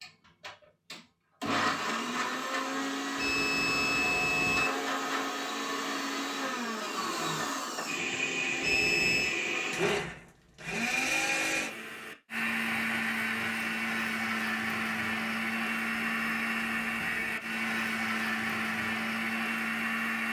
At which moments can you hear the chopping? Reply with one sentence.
The chopping can't be heard in this clip.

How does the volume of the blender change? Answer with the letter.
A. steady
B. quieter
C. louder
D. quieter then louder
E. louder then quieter
A.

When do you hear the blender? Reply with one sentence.
You can hear the blender from 0.0 to 20.2 s.